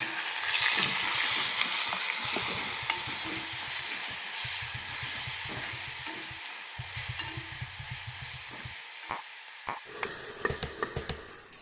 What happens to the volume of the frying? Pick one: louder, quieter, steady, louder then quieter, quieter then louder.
quieter.